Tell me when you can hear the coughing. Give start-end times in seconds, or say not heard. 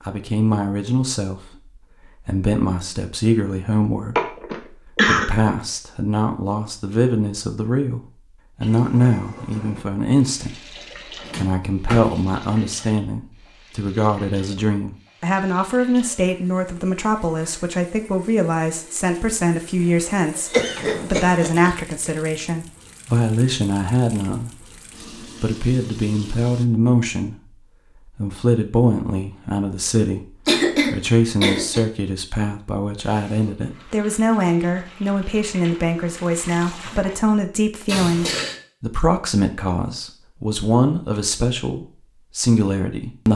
4.2-5.3, 20.5-21.7, 30.4-31.9.